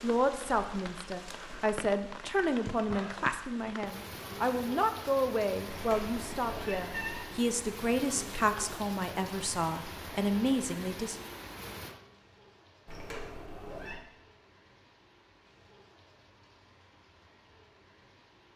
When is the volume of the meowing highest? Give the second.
7 s.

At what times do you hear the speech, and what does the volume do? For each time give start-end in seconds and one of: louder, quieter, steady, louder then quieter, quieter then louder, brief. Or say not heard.
0.0-11.2 steady.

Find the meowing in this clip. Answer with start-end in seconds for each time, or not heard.
5.7-7.3, 12.8-14.1.